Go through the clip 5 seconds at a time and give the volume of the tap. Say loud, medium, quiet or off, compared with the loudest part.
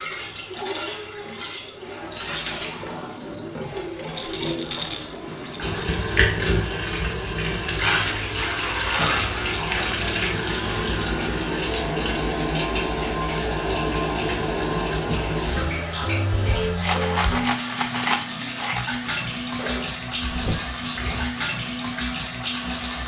medium, loud, loud, loud, loud.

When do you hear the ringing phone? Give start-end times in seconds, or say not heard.
19.6-20.6.